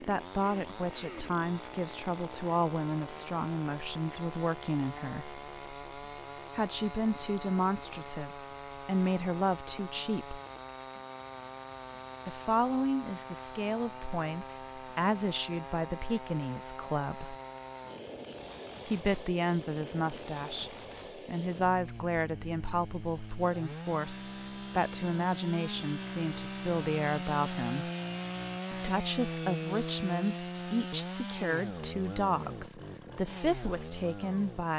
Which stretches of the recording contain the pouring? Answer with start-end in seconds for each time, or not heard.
not heard.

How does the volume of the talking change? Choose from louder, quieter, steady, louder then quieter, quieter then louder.
steady.